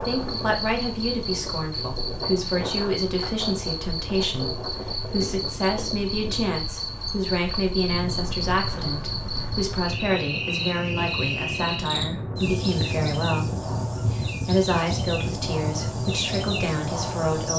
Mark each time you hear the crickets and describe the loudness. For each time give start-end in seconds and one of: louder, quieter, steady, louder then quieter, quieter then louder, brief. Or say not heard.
0.0-17.5 steady.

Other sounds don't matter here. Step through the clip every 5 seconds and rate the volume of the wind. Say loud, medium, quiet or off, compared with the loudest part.
medium, medium, loud, loud.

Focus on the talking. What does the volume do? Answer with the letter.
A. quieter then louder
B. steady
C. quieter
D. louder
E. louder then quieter
B.